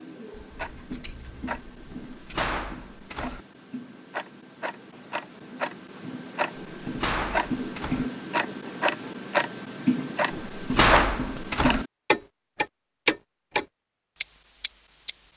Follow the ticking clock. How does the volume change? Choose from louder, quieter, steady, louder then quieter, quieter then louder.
louder.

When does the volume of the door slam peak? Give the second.
11 s.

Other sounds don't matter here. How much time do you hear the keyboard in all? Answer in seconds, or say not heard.
not heard.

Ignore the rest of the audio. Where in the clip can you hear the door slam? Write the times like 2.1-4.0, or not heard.
1.9-3.5, 6.5-8.1, 10.3-11.8.